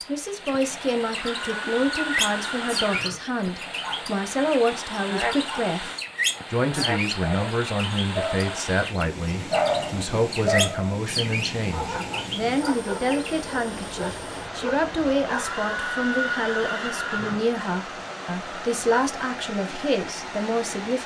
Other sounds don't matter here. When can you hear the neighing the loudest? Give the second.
16 s.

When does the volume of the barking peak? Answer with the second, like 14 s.
10 s.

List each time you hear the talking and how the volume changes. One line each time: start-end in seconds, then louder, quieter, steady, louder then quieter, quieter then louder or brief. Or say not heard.
0.1-21.0 steady.